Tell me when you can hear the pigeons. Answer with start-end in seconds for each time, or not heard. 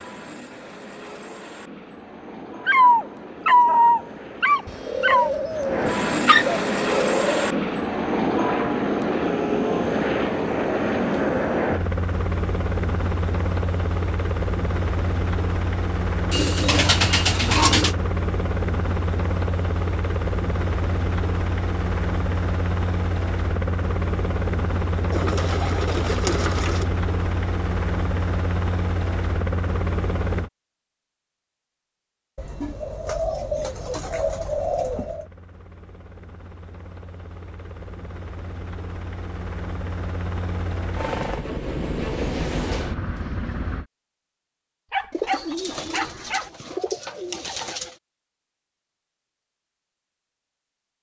4.7-7.5, 16.3-17.9, 25.1-26.9, 32.4-35.3, 45.1-48.0.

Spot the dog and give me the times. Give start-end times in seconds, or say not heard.
2.6-5.3, 44.9-46.5.